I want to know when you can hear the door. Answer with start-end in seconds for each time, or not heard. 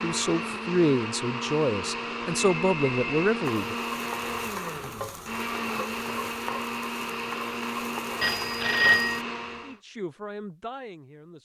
not heard.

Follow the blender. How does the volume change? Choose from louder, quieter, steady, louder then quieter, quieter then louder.
steady.